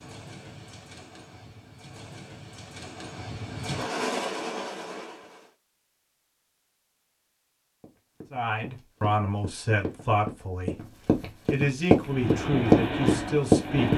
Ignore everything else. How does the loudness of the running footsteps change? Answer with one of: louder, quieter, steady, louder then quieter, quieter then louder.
louder.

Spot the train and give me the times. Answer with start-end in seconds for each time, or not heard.
0.0-5.5, 12.0-13.9.